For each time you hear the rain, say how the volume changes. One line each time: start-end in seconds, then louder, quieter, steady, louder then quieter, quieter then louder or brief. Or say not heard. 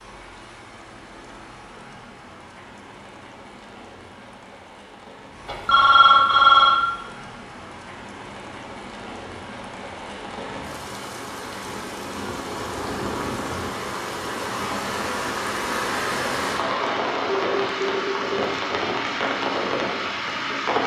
0.0-20.8 louder.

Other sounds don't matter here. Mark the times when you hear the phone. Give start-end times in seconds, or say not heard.
5.5-6.8, 17.2-18.5.